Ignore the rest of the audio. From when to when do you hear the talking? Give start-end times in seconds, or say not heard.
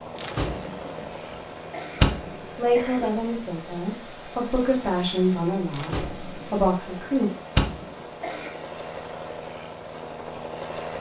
2.5-7.3.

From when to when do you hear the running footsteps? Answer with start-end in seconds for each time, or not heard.
not heard.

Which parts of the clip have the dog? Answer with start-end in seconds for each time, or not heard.
not heard.